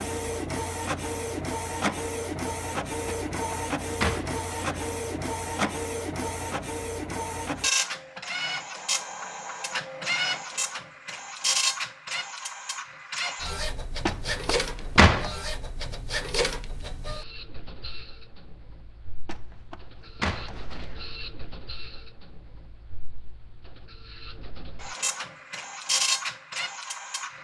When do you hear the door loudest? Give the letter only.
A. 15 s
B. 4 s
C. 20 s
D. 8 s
A.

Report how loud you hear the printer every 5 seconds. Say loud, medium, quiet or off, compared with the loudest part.
loud, loud, loud, medium, quiet, loud.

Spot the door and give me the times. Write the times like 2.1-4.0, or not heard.
3.0-4.8, 14.1-15.3, 19.2-21.1.